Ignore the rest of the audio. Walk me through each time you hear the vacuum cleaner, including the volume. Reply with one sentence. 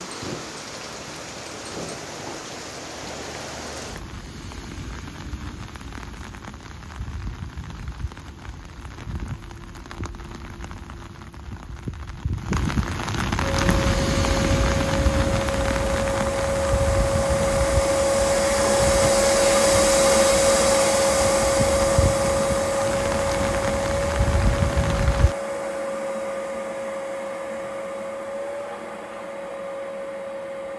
You can hear the vacuum cleaner from 13.4 to 30.7 s, getting louder then quieter.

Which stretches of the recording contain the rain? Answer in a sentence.
The rain can be heard from 0.0 to 25.4 s.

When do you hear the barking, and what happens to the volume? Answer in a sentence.
The barking can't be heard in this clip.